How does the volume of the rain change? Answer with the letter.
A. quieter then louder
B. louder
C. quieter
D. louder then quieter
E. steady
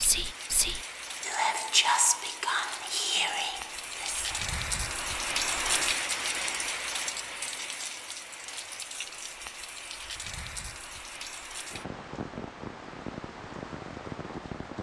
D.